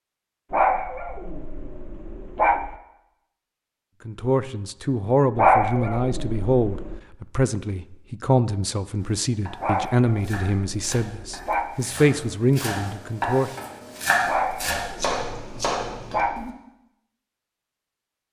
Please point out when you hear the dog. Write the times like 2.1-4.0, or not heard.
0.5-2.8, 5.3-7.0, 9.6-11.7, 14.2-16.5.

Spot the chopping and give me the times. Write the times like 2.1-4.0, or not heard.
8.9-16.5.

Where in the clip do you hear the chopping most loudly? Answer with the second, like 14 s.
14 s.